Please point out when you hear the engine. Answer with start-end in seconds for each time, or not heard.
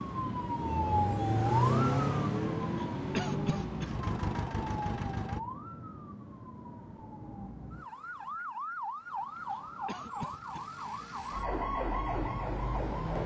0.0-5.4.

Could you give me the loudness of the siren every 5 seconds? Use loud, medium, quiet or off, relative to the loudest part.
loud, medium, loud.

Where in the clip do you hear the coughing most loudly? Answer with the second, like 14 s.
3 s.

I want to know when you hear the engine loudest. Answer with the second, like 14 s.
2 s.